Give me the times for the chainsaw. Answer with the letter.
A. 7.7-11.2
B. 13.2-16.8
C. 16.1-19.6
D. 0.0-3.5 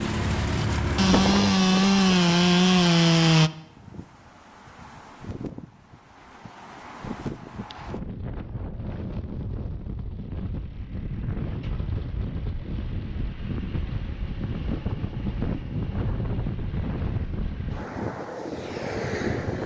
D.